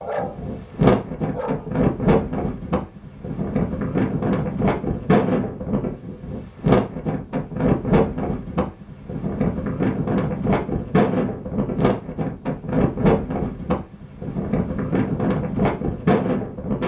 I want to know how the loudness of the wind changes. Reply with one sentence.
The loudness of the wind stays about the same.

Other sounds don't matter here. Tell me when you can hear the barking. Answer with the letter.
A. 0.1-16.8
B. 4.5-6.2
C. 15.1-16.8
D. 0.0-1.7
D.